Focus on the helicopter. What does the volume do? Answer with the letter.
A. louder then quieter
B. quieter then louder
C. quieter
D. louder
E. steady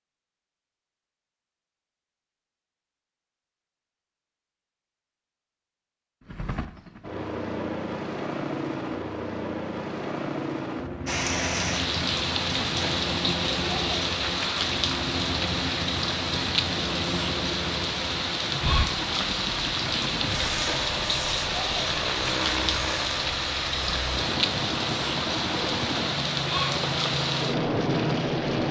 E.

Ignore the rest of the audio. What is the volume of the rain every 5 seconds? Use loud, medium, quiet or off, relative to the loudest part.
off, off, loud, loud, loud, loud.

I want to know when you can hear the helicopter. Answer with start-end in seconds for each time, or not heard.
6.2-28.6.